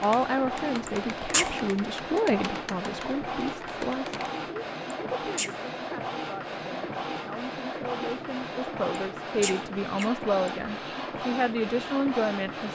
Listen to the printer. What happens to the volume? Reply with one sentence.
The volume of the printer stays about the same.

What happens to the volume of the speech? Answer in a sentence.
The volume of the speech goes down, then up.